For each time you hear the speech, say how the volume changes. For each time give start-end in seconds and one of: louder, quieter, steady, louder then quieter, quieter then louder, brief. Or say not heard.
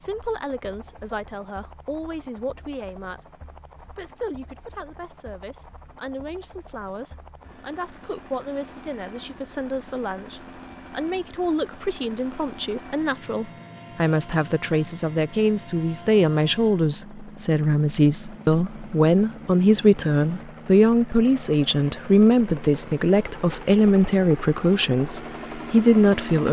0.0-26.4 louder.